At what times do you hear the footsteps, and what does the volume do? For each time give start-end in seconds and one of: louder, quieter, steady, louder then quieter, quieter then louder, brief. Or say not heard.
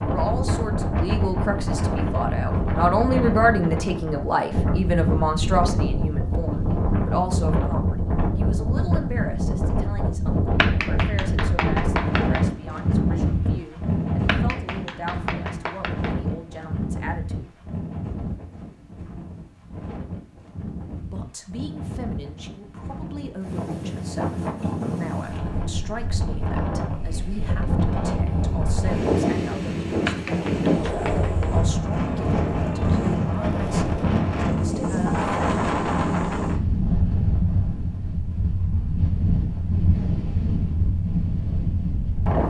not heard.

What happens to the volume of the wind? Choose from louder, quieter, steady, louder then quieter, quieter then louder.
quieter then louder.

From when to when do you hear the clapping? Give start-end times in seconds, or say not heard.
10.6-12.5, 14.2-16.1, 30.0-31.5.